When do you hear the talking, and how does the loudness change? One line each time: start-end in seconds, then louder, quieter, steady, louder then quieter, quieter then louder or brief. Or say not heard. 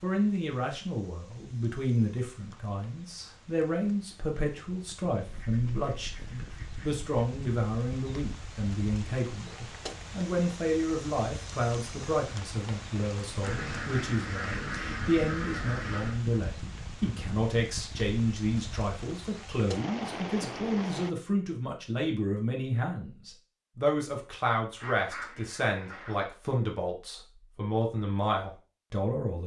0.0-29.4 steady.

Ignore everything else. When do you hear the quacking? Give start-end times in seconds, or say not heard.
5.2-7.0, 13.4-16.2, 24.8-26.3.